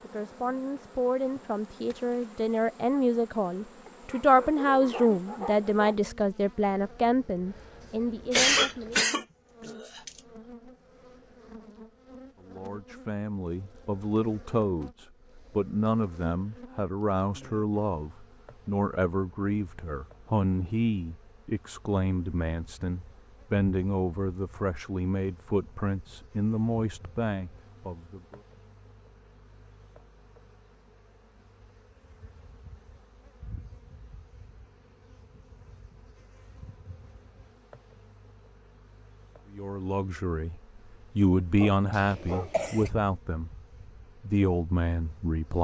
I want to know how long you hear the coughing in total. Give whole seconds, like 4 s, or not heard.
3 s.